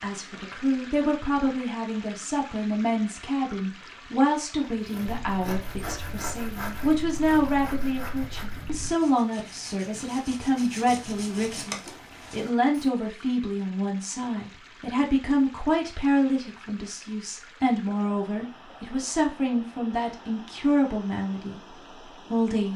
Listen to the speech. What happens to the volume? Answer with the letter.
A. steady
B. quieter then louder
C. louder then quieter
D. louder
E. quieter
A.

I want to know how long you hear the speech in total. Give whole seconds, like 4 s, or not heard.
23 s.